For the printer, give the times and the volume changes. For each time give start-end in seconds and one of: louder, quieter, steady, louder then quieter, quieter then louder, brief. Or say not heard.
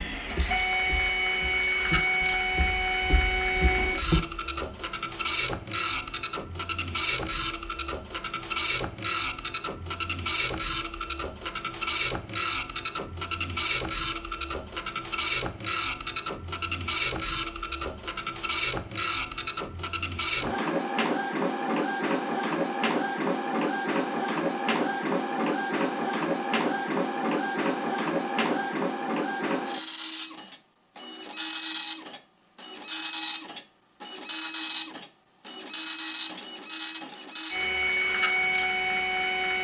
0.0-39.5 steady.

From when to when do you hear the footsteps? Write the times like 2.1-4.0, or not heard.
0.0-4.2.